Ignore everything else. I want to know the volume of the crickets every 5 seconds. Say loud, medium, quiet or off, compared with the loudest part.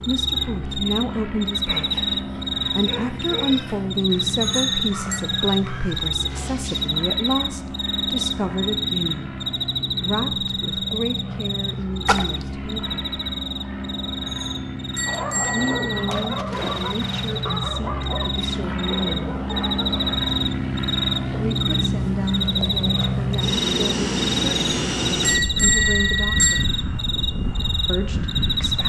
loud, loud, medium, medium, loud, loud.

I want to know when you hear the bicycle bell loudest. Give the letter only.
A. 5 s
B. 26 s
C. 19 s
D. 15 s
B.